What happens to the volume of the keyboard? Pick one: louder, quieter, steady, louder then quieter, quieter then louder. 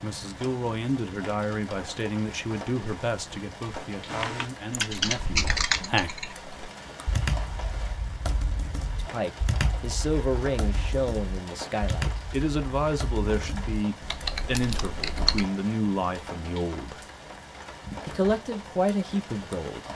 quieter.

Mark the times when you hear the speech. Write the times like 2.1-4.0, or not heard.
0.0-6.1, 8.9-17.1, 18.1-19.9.